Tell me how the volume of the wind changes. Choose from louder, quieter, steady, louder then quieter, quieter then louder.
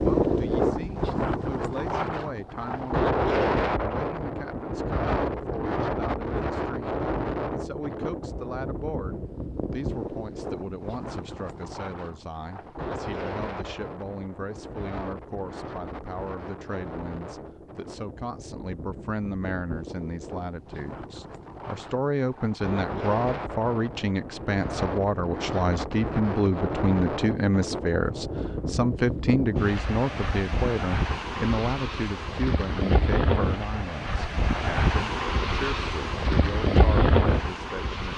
quieter then louder.